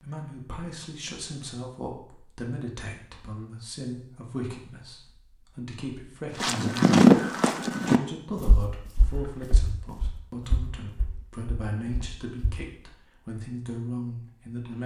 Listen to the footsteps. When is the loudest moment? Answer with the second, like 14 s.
7 s.